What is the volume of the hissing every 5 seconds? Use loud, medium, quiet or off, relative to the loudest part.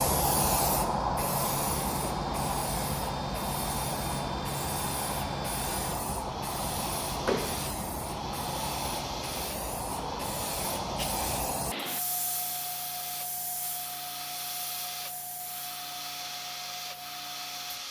loud, loud, medium, quiet.